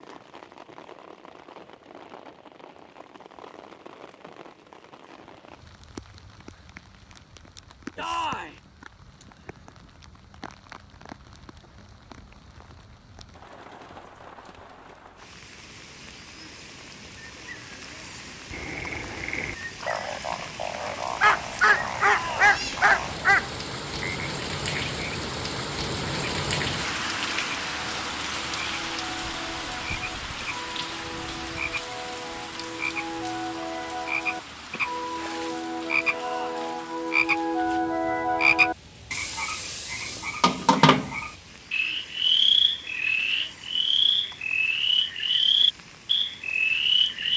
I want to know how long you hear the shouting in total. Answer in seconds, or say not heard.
2 s.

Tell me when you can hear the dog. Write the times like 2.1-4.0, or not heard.
21.2-23.6.